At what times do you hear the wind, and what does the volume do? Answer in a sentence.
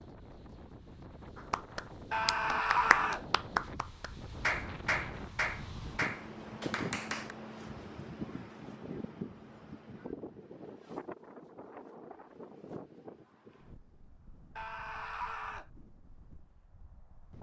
The wind can be heard from 0.0 to 17.3 s, getting louder then quieter.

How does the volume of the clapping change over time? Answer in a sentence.
The volume of the clapping goes up, then down.